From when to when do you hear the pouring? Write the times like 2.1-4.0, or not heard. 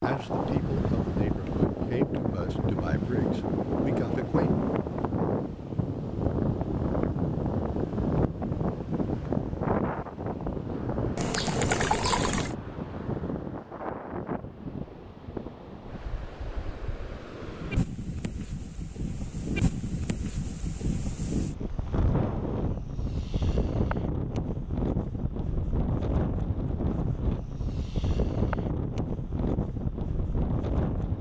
11.2-12.6.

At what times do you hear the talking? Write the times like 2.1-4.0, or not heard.
0.0-4.5.